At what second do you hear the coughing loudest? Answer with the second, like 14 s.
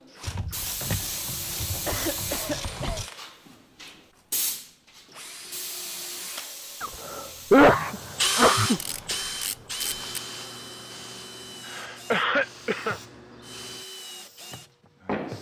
8 s.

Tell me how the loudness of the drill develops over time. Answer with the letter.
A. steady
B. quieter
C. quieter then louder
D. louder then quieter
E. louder
D.